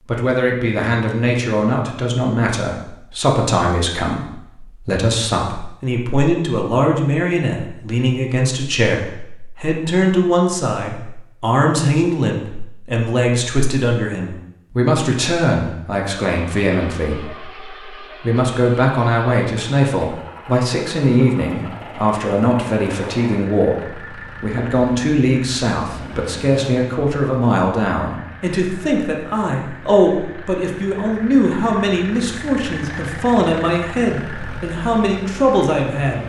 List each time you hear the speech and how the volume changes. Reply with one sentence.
You can hear the speech from 0.1 to 36.2 s, at a steady volume.